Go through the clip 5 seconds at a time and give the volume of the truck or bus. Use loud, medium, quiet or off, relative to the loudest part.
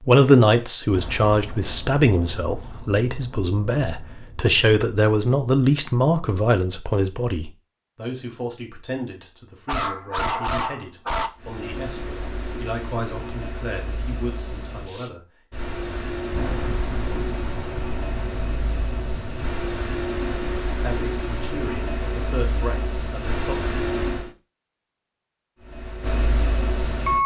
off, off, medium, medium, loud, loud.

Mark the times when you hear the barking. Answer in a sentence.
You can hear the barking from 9.7 to 11.3 s.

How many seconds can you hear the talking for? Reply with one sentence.
The talking can be heard for 18 seconds in total.